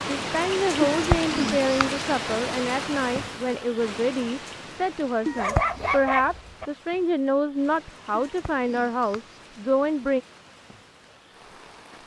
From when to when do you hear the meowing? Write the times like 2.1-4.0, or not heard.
0.9-2.0, 5.2-5.8, 8.1-9.4.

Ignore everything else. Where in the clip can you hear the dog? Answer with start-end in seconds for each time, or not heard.
5.3-6.7.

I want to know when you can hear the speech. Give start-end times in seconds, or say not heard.
0.1-10.2.